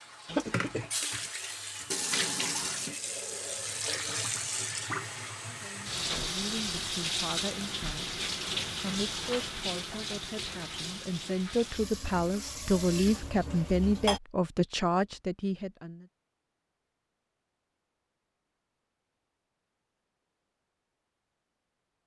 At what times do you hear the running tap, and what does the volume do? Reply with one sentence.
The running tap can be heard from 0.0 to 14.2 s, getting quieter.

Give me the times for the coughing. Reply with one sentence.
The coughing can be heard from 0.2 to 0.9 s.